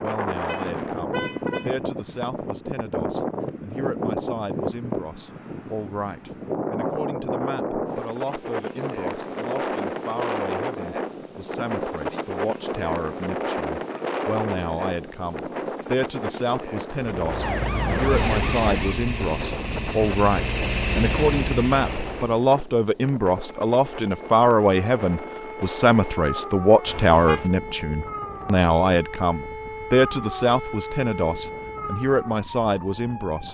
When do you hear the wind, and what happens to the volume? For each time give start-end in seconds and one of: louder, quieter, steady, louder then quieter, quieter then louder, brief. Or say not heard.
0.0-33.4 quieter.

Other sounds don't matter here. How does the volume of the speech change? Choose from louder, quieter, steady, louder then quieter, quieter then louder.
louder.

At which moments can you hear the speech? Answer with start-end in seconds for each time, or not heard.
0.0-33.4.